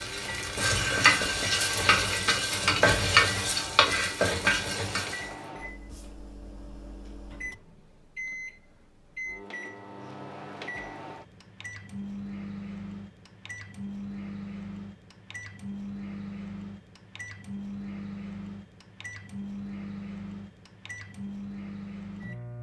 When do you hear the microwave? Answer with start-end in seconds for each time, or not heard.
0.0-22.5.